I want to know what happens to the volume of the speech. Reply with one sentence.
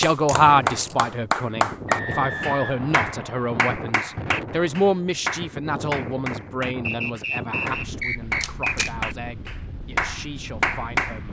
The volume of the speech goes down.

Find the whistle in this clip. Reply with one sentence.
The whistle can be heard from 1.9 to 3.6 s and from 6.8 to 8.8 s.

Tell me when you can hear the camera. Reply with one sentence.
The camera can be heard from 0.2 to 0.9 s and from 8.4 to 8.9 s.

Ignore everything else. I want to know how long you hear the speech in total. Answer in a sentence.
You can hear the speech for 11 seconds altogether.